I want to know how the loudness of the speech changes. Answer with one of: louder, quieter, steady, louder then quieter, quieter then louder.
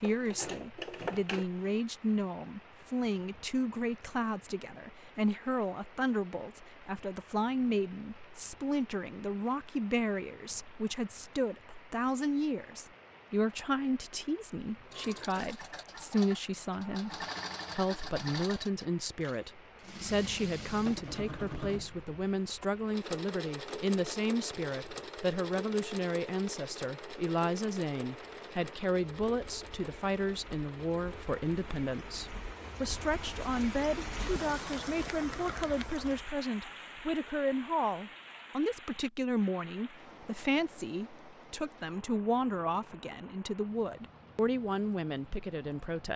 steady.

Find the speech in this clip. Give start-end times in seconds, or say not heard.
0.0-46.1.